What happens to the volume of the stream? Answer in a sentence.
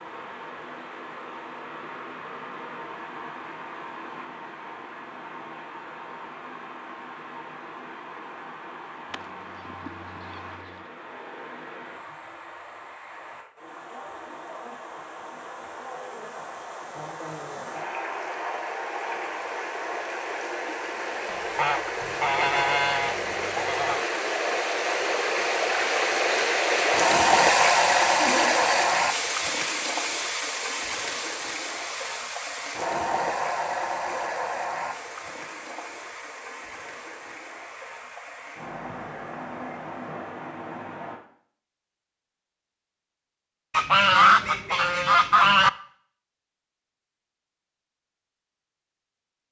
The loudness of the stream goes up, then down.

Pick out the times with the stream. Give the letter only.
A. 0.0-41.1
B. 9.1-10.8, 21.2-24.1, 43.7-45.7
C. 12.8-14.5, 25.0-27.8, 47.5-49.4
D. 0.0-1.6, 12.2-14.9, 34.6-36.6
A.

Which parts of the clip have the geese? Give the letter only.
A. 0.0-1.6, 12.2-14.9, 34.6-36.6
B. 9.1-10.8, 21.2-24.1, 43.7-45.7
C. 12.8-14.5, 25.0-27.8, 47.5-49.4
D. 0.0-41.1
B.